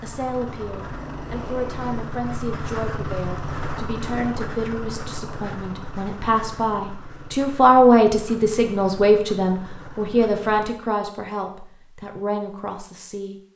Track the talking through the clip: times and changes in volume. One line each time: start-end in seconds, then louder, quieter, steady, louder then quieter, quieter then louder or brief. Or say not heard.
0.0-13.4 louder then quieter.